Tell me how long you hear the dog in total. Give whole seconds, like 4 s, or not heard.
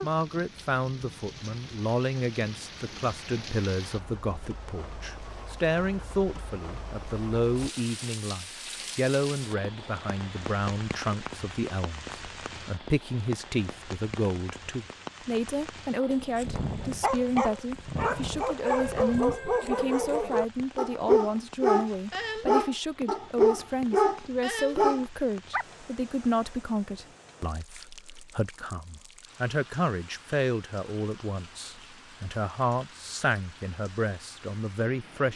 10 s.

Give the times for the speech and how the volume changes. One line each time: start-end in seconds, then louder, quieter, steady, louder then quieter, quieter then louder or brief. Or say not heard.
0.0-35.3 steady.